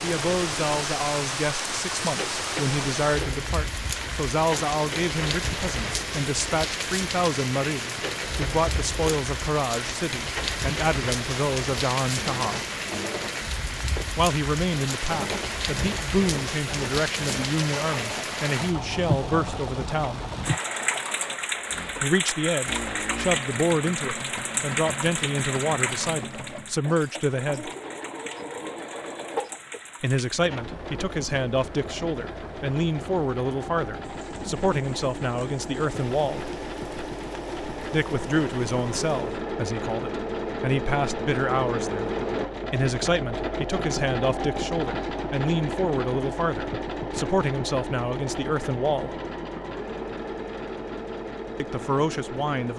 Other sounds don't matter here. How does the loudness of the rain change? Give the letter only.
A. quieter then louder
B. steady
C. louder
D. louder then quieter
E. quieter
E.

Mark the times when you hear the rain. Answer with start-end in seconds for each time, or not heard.
0.0-39.4.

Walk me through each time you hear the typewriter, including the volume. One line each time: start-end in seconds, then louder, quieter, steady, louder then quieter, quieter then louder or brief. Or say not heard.
not heard.